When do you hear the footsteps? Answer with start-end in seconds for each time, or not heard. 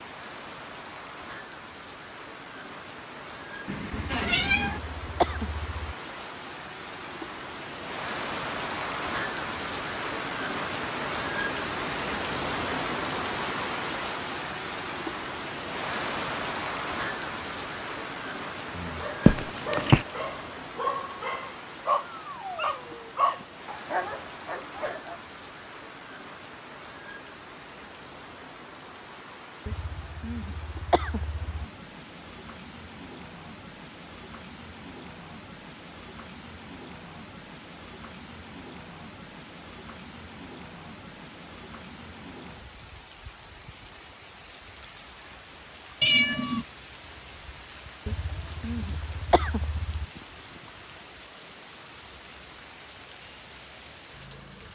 not heard.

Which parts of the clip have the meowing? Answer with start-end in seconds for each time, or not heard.
3.6-4.8, 19.2-20.1, 46.0-46.6.